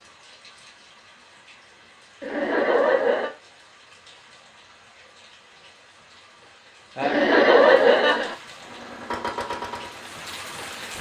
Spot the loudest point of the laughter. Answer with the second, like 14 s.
8 s.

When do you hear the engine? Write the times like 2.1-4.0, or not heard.
8.6-10.9.